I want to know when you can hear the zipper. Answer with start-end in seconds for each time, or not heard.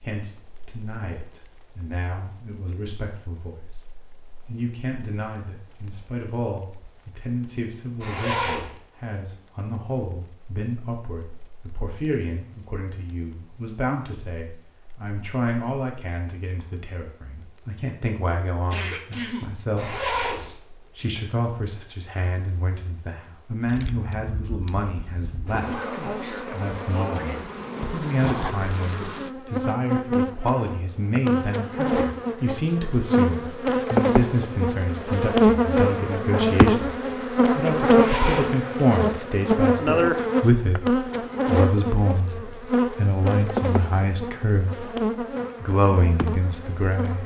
8.0-8.8, 19.8-20.5, 37.8-38.5.